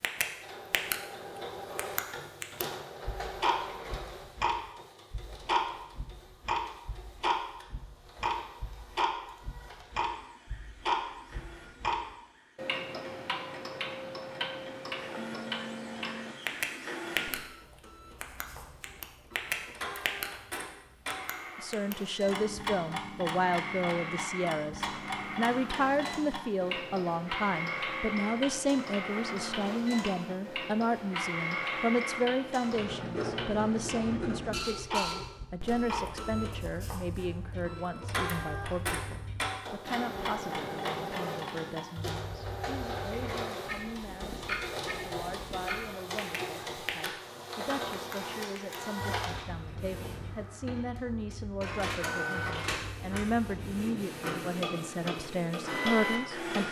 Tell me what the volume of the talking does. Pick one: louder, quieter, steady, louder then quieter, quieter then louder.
quieter then louder.